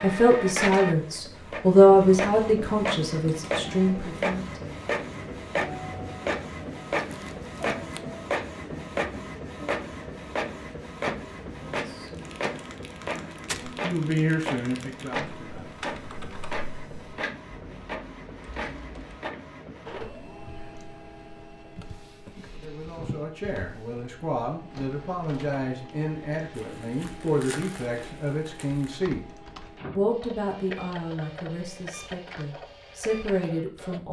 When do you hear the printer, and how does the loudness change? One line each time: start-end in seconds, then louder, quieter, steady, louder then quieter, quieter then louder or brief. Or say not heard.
0.0-34.0 quieter.